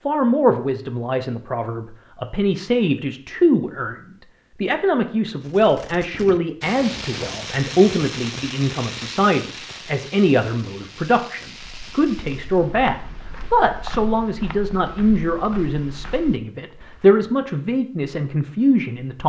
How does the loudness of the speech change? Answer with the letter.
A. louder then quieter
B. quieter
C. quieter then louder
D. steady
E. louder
D.